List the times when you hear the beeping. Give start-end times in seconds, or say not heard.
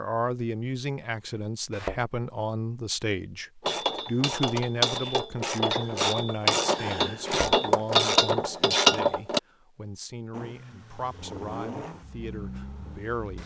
not heard.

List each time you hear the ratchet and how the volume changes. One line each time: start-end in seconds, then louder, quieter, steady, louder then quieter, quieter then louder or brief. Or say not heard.
3.6-9.4 louder.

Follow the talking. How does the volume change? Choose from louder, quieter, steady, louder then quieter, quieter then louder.
quieter.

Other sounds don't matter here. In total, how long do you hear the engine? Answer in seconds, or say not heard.
3 s.